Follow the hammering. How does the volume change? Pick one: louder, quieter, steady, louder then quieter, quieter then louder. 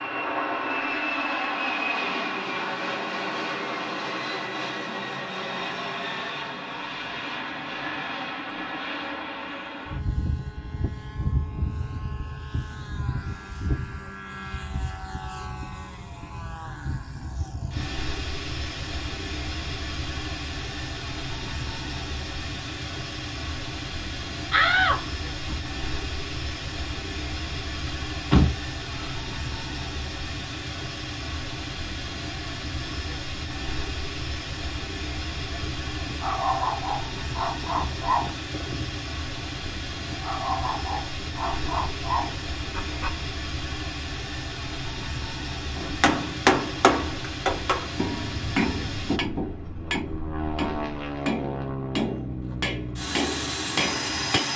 quieter.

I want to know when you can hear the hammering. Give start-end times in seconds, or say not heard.
45.8-54.5.